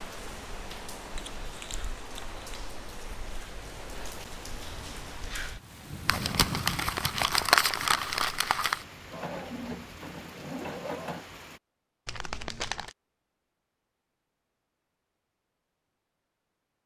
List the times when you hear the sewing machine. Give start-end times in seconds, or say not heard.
9.1-11.4.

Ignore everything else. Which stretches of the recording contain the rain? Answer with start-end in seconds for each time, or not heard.
0.0-11.6.